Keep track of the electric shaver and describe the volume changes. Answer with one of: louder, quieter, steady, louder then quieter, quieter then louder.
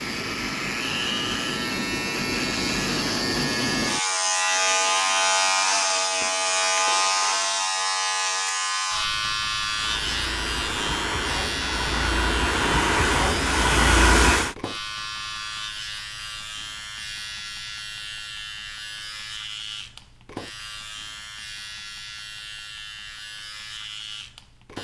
quieter.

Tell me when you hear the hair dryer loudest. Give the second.
14 s.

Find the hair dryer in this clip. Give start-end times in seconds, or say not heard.
9.7-14.6.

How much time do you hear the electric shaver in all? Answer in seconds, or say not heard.
25 s.